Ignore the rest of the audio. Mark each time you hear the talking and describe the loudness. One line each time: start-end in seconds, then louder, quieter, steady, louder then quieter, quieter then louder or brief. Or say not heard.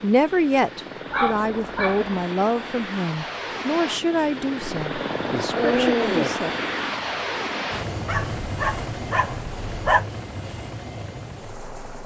0.0-6.5 quieter.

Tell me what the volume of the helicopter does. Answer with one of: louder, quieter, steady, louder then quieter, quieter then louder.
louder then quieter.